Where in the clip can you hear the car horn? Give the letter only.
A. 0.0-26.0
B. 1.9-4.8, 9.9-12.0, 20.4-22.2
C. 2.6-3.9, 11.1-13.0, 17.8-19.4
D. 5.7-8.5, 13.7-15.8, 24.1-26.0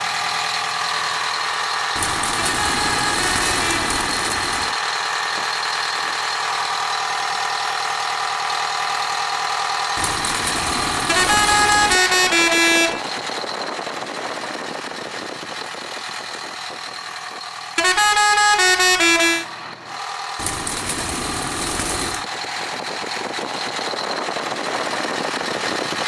C.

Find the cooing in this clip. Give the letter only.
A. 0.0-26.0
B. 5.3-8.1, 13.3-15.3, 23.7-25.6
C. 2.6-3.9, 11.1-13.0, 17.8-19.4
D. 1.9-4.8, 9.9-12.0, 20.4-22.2
D.